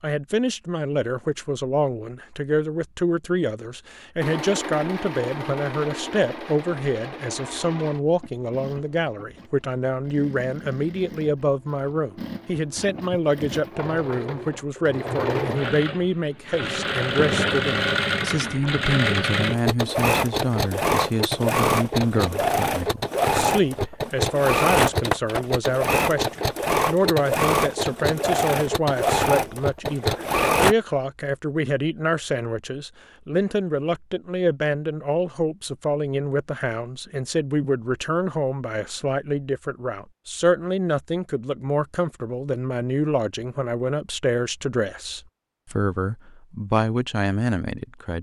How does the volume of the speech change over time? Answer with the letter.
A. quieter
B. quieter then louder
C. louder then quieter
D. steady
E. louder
D.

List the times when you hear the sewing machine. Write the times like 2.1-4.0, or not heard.
4.2-30.8.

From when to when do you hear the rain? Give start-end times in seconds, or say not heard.
not heard.